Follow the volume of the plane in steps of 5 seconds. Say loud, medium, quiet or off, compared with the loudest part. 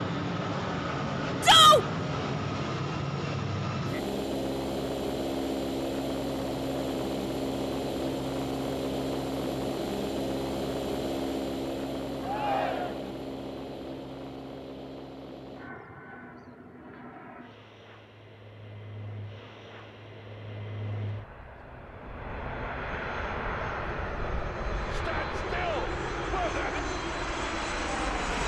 loud, loud, loud, quiet, medium, loud.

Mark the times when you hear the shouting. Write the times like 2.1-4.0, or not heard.
1.4-1.9, 12.2-13.1, 24.9-26.8.